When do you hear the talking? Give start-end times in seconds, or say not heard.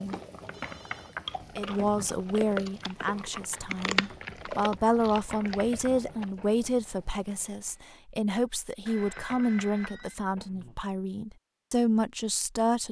1.6-12.8.